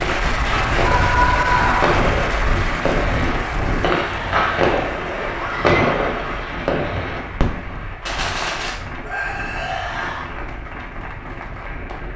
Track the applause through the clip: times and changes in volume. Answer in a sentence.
You can hear the applause from 0.0 to 12.1 s, getting quieter.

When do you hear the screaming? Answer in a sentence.
You can hear the screaming from 0.8 to 2.0 s, from 5.3 to 5.8 s and from 9.0 to 10.3 s.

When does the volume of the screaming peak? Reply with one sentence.
The loudest moment of the screaming is at 1 second.